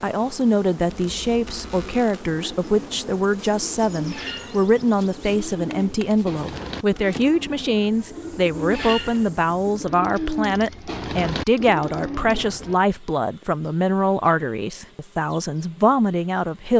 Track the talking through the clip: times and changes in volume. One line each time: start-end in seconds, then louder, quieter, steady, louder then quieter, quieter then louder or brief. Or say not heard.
0.0-16.7 steady.